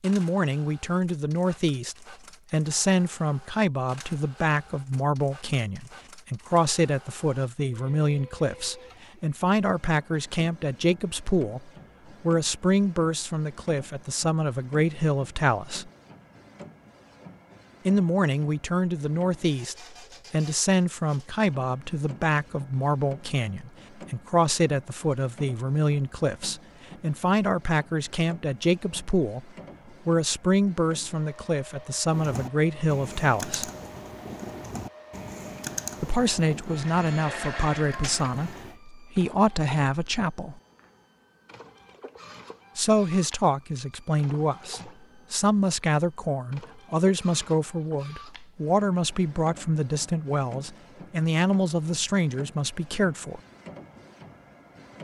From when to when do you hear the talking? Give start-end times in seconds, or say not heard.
0.0-15.9, 17.9-33.7, 36.0-40.6, 42.8-53.4.